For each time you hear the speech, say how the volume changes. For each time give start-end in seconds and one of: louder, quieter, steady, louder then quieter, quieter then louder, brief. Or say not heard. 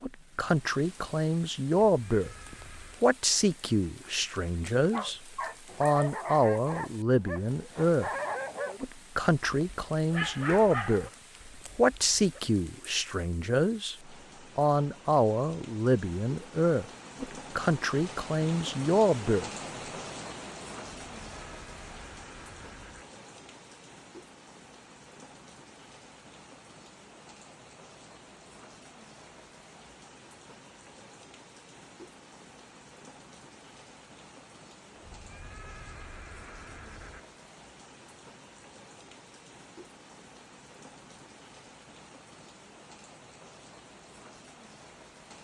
0.0-2.3 brief
3.0-5.2 brief
5.8-8.1 brief
8.8-11.1 brief
11.8-19.5 steady.